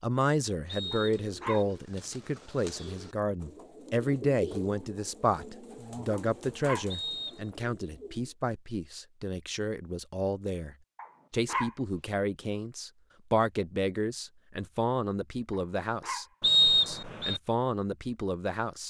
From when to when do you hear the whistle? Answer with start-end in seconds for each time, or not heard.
0.7-1.6, 6.9-7.5, 16.4-17.4.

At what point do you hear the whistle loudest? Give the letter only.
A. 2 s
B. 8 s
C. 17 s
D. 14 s
C.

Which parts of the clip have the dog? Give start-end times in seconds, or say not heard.
0.9-1.6, 6.1-6.8, 10.9-11.8, 15.5-16.2.